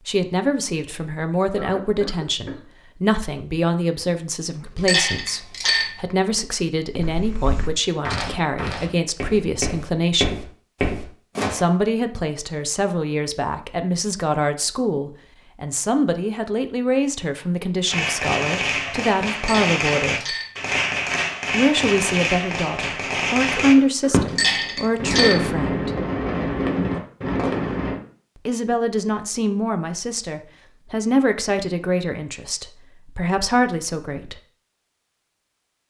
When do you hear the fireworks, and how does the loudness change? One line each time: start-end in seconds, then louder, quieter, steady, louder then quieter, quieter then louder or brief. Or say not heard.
17.9-28.0 steady.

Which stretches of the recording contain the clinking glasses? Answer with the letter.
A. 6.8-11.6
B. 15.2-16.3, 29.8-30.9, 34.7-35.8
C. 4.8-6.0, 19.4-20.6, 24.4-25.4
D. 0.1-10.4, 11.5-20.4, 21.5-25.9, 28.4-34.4
C.